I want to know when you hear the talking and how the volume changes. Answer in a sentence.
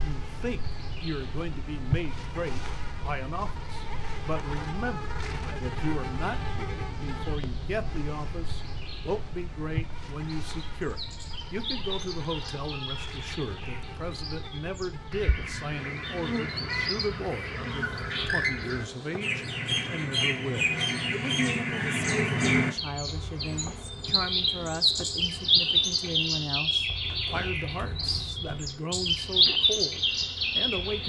The talking can be heard from 0.0 to 31.0 s, at a steady volume.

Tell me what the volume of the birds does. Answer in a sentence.
The volume of the birds goes up.